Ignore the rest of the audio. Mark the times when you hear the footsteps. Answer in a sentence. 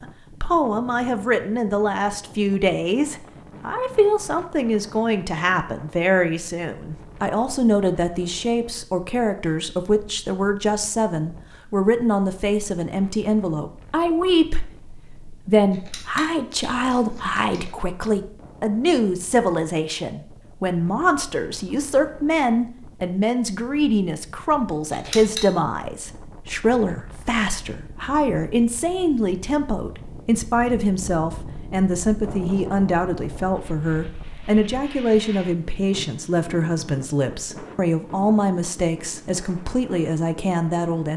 You can't hear the footsteps here.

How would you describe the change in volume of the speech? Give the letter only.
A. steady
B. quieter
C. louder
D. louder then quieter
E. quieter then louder
A.